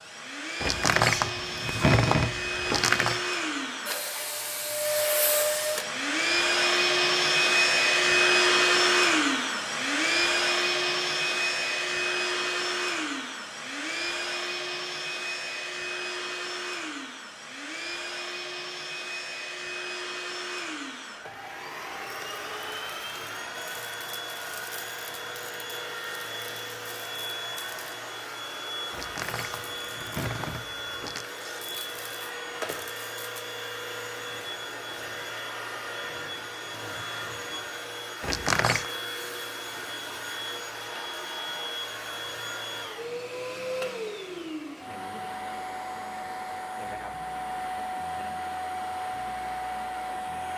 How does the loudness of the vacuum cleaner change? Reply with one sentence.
The loudness of the vacuum cleaner goes down.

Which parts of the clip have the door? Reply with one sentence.
You can hear the door from 0.6 to 3.2 s, from 28.9 to 31.3 s and from 38.2 to 38.9 s.